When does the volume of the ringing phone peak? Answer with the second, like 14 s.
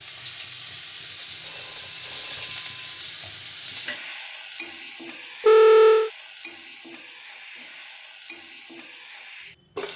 6 s.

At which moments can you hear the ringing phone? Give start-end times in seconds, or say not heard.
1.3-3.0, 5.4-6.1.